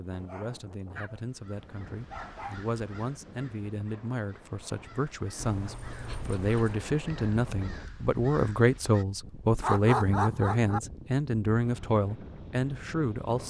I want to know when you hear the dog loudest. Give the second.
10 s.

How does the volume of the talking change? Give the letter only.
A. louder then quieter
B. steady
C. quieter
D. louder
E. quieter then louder
D.